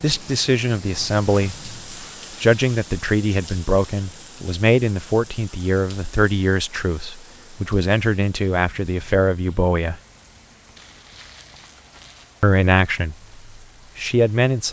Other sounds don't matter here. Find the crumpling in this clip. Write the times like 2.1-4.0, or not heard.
10.8-12.3.